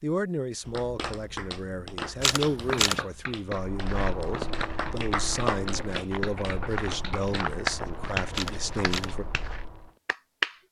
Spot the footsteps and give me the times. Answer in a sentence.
You can hear the footsteps from 3.5 to 9.9 s.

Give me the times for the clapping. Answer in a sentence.
The clapping can be heard from 0.7 to 10.6 s.